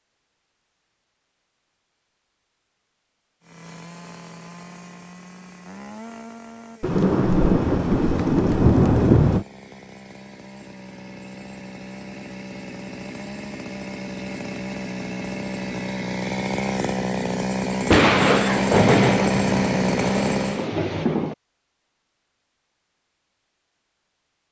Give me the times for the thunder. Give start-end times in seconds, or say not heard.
6.8-9.4, 17.9-21.4.